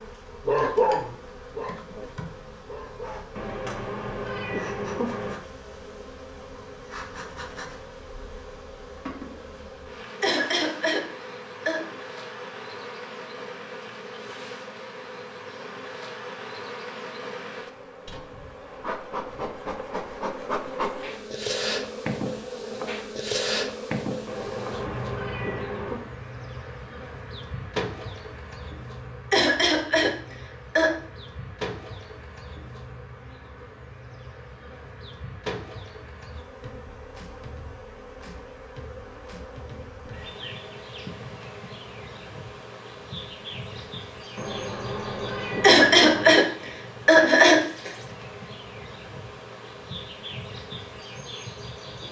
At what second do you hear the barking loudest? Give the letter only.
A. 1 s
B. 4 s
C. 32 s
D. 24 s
A.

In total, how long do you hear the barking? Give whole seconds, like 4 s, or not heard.
2 s.